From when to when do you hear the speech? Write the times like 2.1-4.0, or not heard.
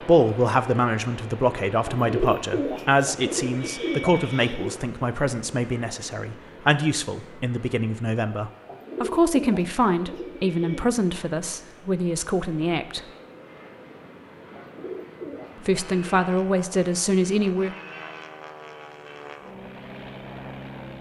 0.0-13.1, 15.6-17.8.